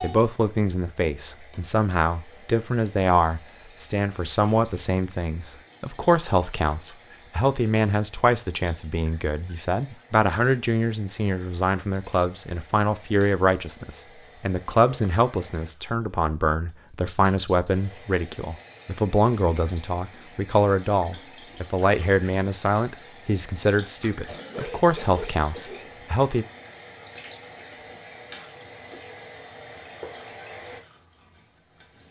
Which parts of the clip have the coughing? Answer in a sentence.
The coughing can be heard from 24.0 to 25.9 s.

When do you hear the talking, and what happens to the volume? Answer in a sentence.
The talking can be heard from 0.0 to 26.4 s, at a steady volume.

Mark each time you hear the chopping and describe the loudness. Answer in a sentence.
You can't hear the chopping here.